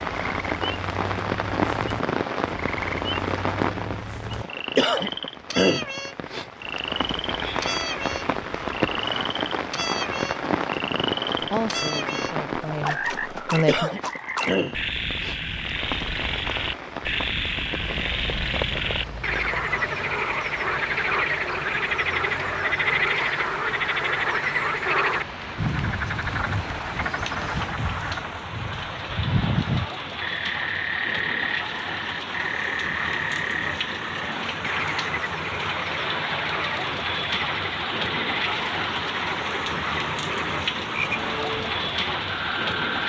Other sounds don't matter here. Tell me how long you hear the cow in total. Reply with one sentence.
You can't hear the cow here.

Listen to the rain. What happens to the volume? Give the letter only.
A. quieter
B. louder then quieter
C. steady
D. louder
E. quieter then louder
E.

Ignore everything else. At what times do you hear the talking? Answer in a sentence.
The talking can be heard from 11.4 to 13.9 s.